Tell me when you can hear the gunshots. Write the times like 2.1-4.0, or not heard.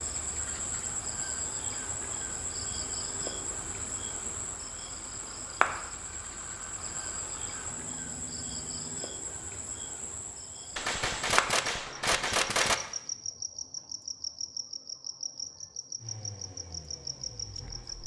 10.8-12.8.